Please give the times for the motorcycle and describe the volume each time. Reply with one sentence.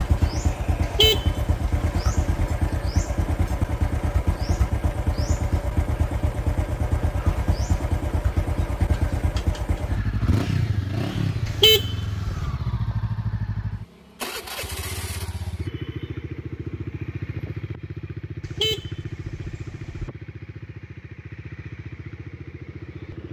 The motorcycle can be heard from 0.0 to 23.2 s, getting quieter.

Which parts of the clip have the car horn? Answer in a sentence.
You can hear the car horn from 0.8 to 2.5 s, from 11.4 to 12.5 s and from 18.4 to 20.1 s.